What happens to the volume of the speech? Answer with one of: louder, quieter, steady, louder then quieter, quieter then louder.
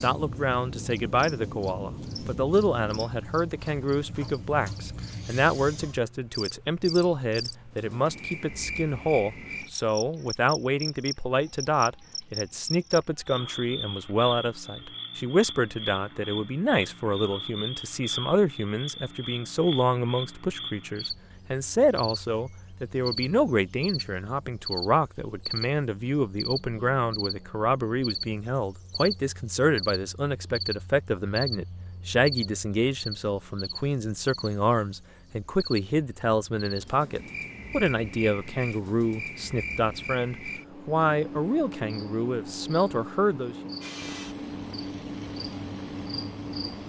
steady.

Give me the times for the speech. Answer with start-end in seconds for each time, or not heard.
0.0-43.5.